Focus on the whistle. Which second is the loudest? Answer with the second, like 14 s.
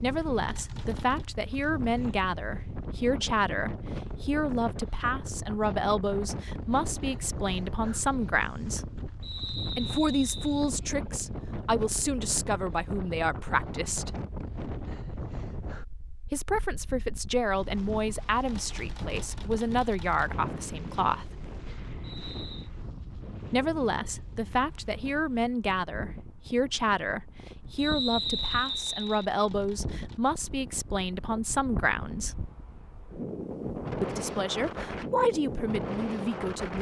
28 s.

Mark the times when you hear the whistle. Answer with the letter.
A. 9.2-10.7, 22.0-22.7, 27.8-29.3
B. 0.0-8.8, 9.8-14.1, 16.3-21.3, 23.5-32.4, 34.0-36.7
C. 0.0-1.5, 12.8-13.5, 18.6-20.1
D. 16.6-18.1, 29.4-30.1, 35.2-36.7
A.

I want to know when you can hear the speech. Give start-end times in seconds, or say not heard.
0.0-8.8, 9.8-14.1, 16.3-21.3, 23.5-32.4, 34.0-36.7.